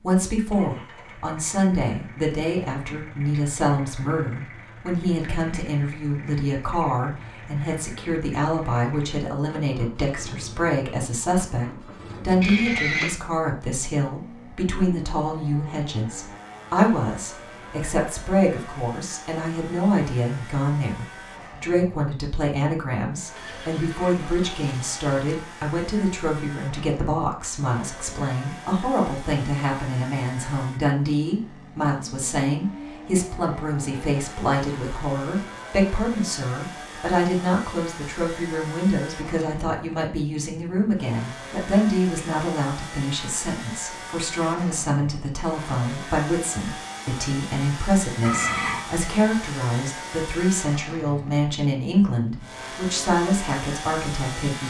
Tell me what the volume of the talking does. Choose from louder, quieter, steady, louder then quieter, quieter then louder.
steady.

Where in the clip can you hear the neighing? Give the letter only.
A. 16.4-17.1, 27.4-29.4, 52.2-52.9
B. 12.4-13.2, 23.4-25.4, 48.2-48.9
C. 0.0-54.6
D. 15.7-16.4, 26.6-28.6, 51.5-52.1
B.